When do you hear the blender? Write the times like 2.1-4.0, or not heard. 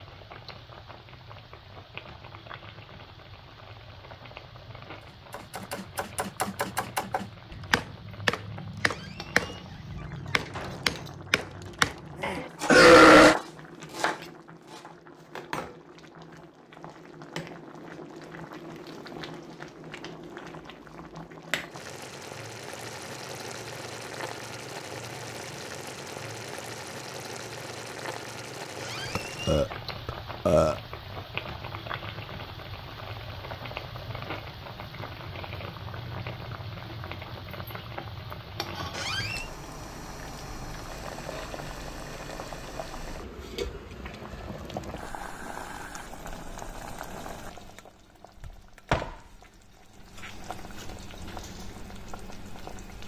not heard.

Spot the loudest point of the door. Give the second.
39 s.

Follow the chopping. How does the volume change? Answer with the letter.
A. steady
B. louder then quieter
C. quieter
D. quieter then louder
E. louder
A.